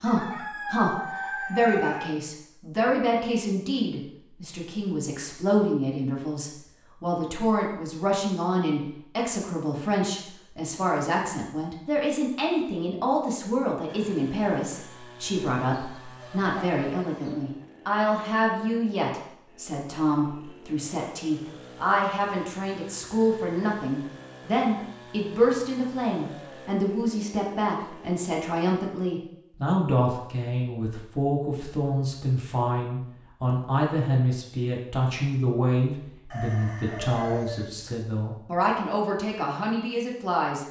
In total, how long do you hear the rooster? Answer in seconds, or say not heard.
5 s.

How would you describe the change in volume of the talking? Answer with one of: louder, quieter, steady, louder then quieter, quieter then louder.
steady.